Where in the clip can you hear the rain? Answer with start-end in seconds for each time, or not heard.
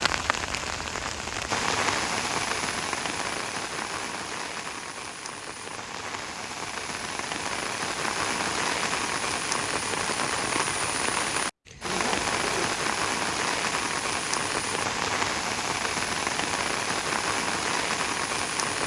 0.0-18.8.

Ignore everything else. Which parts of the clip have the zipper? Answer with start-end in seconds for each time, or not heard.
11.8-12.8.